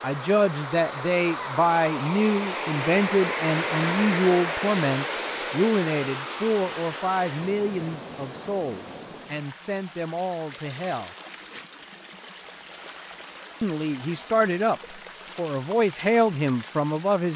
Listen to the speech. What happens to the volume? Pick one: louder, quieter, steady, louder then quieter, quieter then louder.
quieter then louder.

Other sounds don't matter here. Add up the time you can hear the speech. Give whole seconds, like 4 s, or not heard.
15 s.